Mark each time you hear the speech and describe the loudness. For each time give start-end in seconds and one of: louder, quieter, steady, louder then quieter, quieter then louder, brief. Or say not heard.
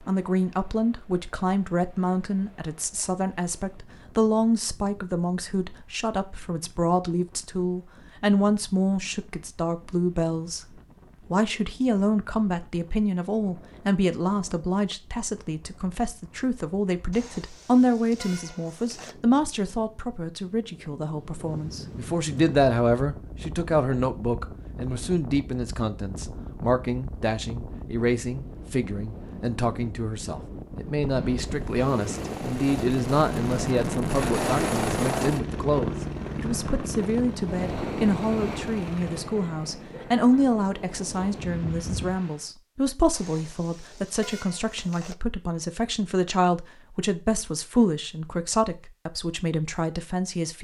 0.1-50.5 steady.